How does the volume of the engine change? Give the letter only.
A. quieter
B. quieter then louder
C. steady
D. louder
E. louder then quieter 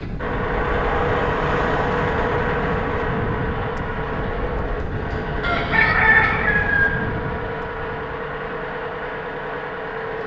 A.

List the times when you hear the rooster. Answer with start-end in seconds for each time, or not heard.
5.4-6.9.